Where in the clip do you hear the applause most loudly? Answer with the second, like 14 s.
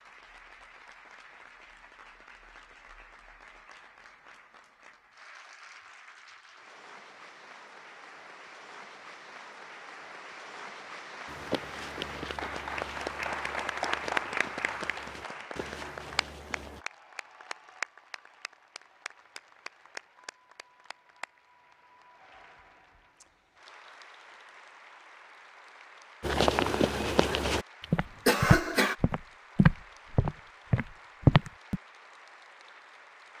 14 s.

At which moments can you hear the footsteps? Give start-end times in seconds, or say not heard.
11.2-16.8, 26.2-31.8.